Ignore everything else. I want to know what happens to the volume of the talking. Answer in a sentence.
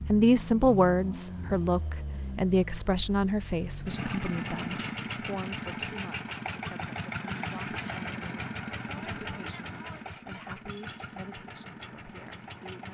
The loudness of the talking goes down.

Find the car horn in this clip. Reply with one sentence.
You can't hear the car horn here.